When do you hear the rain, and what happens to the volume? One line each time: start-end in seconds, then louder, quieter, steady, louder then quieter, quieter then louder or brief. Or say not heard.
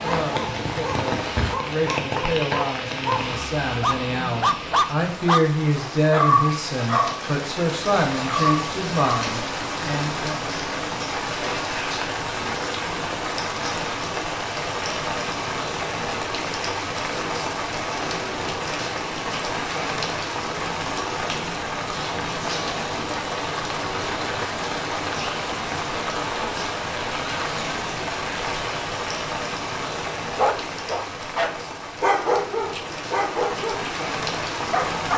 0.0-35.1 steady.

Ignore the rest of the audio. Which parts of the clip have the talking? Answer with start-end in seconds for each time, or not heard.
0.0-10.4.